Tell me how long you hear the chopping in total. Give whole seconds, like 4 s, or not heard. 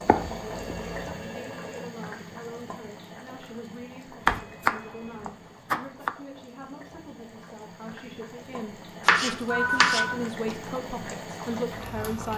4 s.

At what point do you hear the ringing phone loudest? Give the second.
10 s.